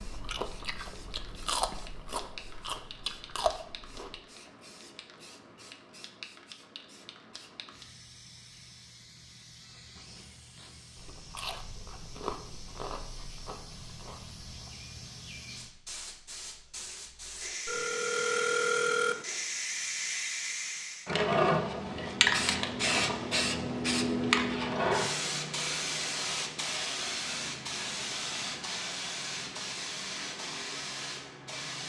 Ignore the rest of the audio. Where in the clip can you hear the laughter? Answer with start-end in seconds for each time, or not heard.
not heard.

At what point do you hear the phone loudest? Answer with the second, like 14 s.
19 s.